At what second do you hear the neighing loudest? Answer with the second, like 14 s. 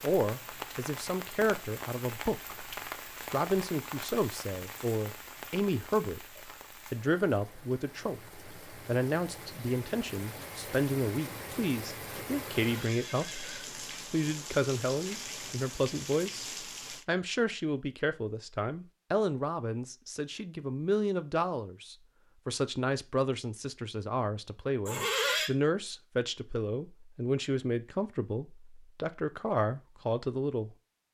25 s.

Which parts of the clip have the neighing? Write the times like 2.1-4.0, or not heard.
12.6-13.8, 24.9-25.5.